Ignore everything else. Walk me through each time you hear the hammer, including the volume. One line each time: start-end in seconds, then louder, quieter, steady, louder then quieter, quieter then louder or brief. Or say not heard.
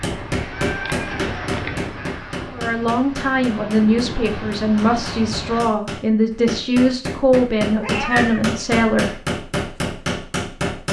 0.0-10.8 quieter then louder.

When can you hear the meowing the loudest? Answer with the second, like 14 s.
8 s.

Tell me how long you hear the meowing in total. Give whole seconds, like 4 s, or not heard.
2 s.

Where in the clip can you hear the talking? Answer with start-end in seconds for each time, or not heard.
2.5-9.2.